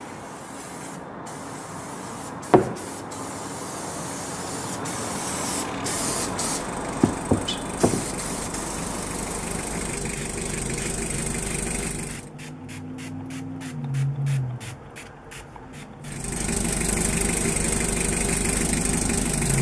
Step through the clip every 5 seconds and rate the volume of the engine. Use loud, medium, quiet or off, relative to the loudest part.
off, medium, medium, loud.